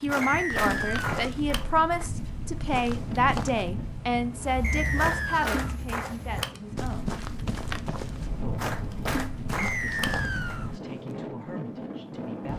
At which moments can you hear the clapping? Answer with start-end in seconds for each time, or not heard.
0.1-2.1, 5.0-6.5, 8.6-10.6.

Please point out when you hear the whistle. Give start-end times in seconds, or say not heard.
0.2-1.1, 4.6-5.5, 9.6-10.7.